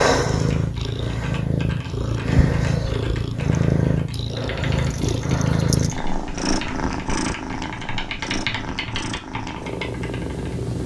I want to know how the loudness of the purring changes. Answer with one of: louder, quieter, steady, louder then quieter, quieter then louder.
quieter.